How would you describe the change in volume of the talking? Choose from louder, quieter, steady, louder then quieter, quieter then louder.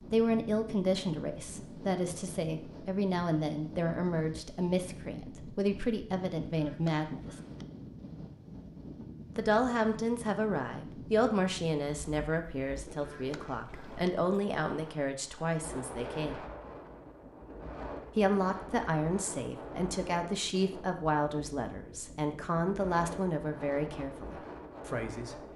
steady.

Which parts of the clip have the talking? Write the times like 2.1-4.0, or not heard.
0.1-7.3, 9.3-16.4, 18.1-25.4.